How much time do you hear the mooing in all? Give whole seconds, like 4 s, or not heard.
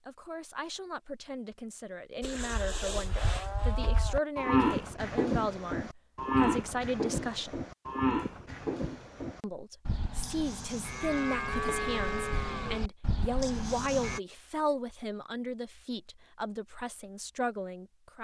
12 s.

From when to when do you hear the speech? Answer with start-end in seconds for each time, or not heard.
0.1-7.6, 9.4-18.1.